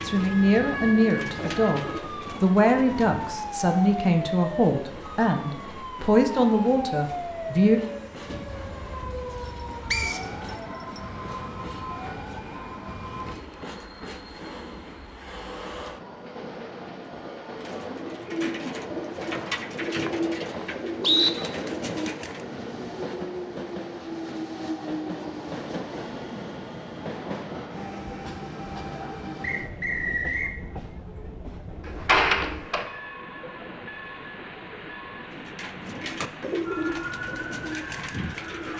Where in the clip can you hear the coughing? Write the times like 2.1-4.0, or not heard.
not heard.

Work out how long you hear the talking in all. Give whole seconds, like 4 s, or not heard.
8 s.